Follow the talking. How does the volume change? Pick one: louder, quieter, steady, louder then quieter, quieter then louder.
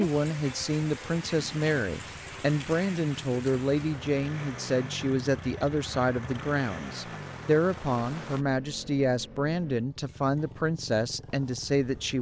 steady.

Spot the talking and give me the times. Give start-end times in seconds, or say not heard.
0.0-12.1.